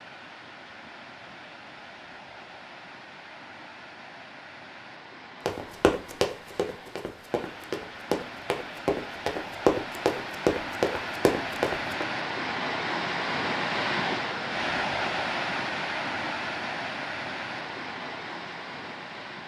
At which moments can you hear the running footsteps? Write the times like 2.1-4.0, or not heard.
5.5-12.1.